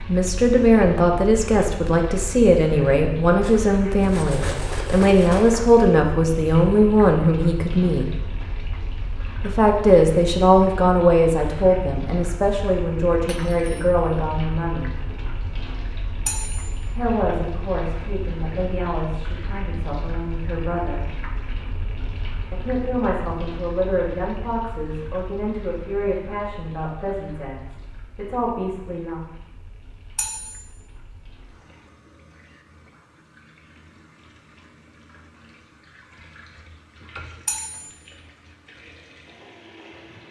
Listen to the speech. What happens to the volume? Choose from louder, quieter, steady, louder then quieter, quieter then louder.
quieter.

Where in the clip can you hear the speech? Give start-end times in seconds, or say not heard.
0.0-8.1, 9.4-14.9, 16.9-21.1, 22.5-29.2.